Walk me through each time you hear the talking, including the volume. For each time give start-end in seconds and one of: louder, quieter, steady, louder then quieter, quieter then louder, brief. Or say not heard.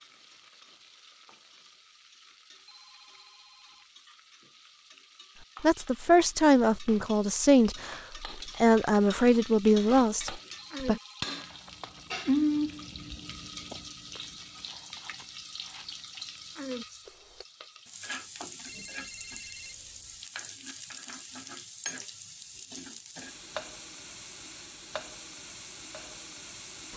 5.6-10.9 steady.